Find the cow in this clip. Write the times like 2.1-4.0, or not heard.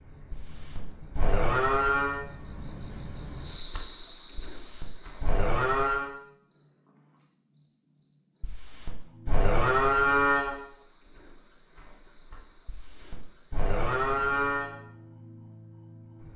0.3-2.2, 4.3-6.1, 8.4-10.6, 12.7-14.7.